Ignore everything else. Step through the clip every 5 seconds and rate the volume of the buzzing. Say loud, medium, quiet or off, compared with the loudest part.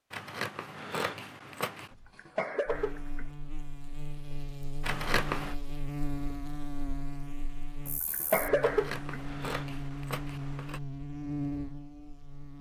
medium, loud, loud.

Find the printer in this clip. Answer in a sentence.
You can't hear the printer here.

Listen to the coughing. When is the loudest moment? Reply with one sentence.
The loudest moment of the coughing is at 8 seconds.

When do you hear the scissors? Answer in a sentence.
You can hear the scissors from 0.1 to 1.9 s, from 4.8 to 5.5 s and from 8.6 to 10.8 s.